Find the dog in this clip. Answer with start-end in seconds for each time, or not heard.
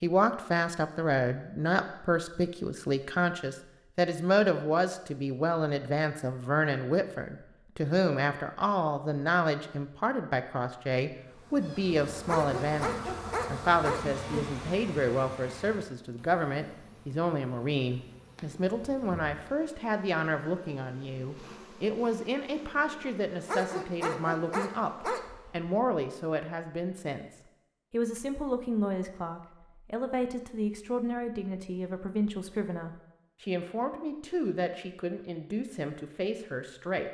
12.2-14.1, 23.4-25.2.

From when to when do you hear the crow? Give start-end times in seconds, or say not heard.
not heard.